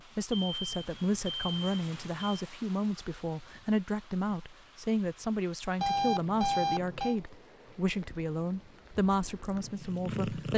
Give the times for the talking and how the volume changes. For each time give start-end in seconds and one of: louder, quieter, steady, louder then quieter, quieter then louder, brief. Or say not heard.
0.1-10.5 steady.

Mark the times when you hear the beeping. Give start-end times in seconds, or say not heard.
0.3-2.5, 5.8-7.2.